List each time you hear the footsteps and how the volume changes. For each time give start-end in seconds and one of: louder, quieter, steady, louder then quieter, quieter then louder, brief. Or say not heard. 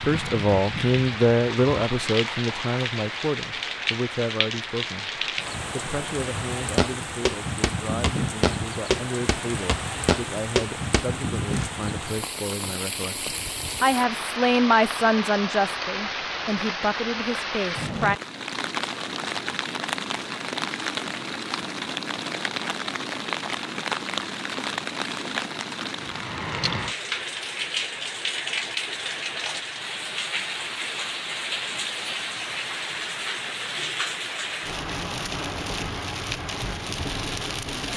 6.8-11.7 steady.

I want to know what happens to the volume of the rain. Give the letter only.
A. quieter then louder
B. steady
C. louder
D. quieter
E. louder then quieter
B.